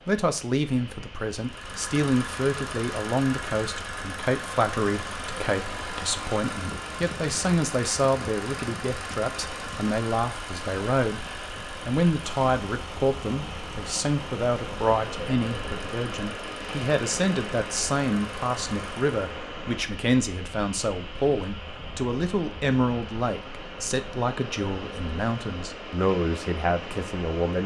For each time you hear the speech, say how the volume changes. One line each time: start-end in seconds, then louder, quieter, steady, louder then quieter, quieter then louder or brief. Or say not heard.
0.1-27.6 steady.